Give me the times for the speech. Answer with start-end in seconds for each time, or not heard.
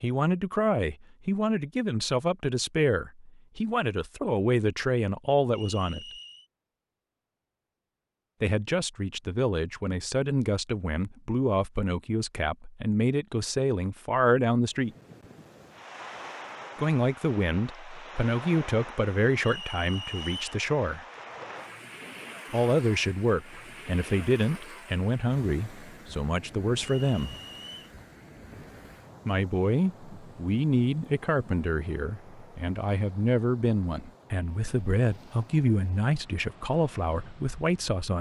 0.0-6.0, 8.4-14.9, 16.8-21.1, 22.5-27.4, 29.2-38.1.